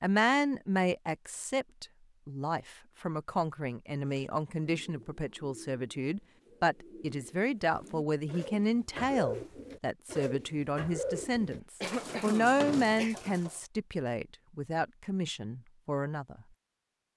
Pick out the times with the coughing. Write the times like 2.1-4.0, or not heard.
11.3-13.2.